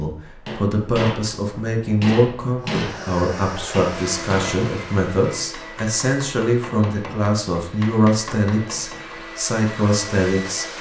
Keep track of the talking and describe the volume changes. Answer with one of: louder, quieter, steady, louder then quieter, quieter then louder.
steady.